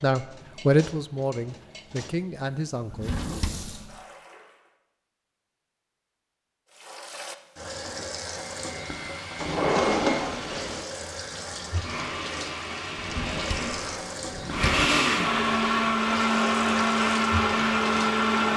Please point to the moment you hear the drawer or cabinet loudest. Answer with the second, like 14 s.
10 s.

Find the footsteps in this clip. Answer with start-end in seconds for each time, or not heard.
not heard.